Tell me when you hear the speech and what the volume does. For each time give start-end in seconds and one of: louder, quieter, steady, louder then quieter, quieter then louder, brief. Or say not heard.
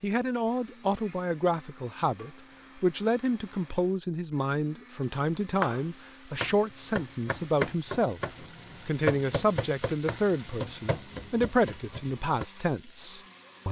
0.0-13.6 steady.